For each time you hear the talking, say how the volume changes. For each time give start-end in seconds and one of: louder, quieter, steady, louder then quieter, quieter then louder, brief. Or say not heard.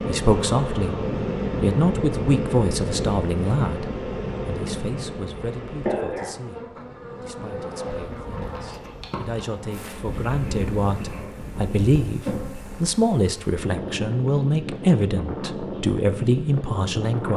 0.1-17.3 quieter then louder.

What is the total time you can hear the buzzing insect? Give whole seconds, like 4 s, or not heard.
17 s.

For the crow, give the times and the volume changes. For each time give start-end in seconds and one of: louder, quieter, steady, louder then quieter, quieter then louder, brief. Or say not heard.
not heard.